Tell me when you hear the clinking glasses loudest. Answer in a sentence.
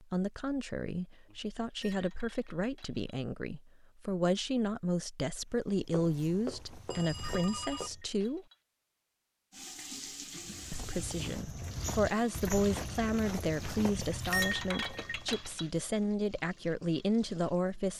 The loudest moment of the clinking glasses is at 14 seconds.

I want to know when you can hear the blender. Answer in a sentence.
The blender can't be heard in this clip.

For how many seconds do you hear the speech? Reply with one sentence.
You can hear the speech for 16 seconds altogether.